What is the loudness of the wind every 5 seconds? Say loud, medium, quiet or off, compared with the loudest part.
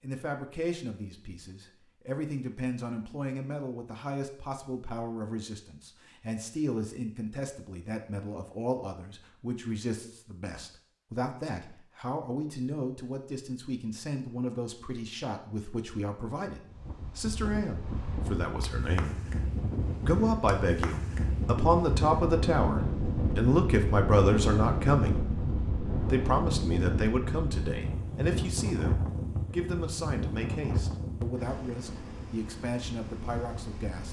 off, off, off, medium, loud, loud, medium.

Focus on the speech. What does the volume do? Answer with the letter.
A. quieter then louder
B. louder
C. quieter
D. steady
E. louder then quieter
E.